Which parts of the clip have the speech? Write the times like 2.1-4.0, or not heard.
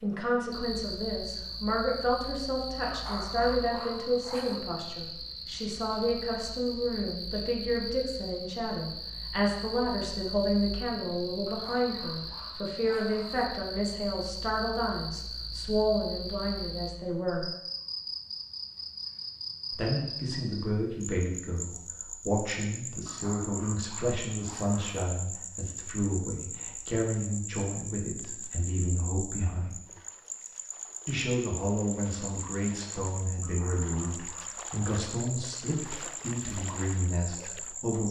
0.0-17.5, 19.7-29.8, 31.1-38.0.